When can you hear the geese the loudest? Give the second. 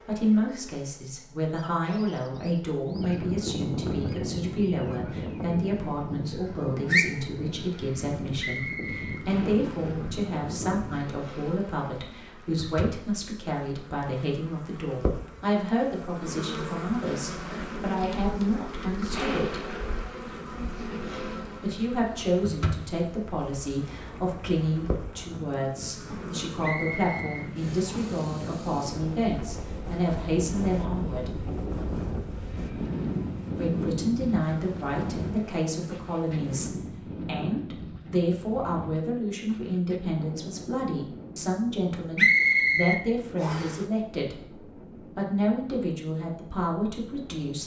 7 s.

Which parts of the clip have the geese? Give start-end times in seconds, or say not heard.
2.9-11.1.